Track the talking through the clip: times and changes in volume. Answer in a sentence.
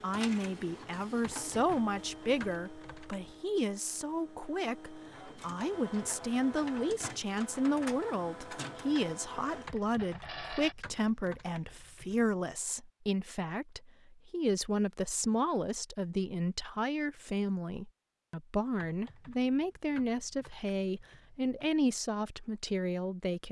The talking can be heard from 0.0 to 23.4 s, at a steady volume.